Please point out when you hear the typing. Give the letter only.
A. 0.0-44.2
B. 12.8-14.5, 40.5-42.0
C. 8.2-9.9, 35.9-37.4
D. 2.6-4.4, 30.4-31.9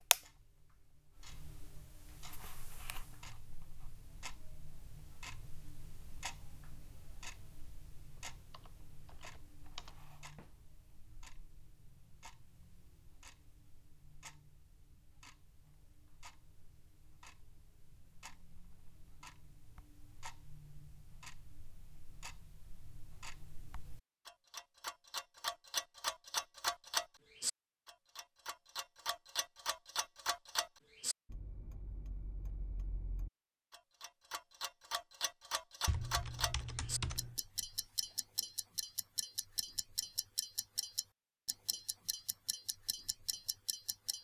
C.